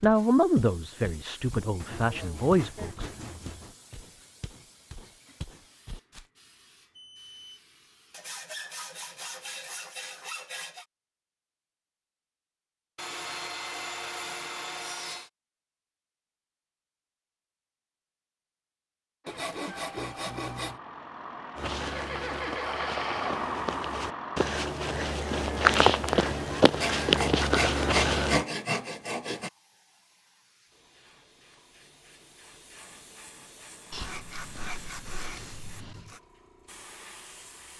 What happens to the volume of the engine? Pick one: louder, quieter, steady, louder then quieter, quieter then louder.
louder.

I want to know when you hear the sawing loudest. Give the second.
28 s.